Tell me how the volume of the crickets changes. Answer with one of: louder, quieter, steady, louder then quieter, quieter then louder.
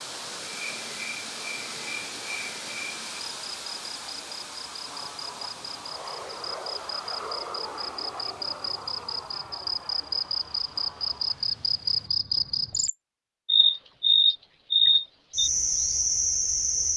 louder.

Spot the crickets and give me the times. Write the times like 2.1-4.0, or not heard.
0.0-16.9.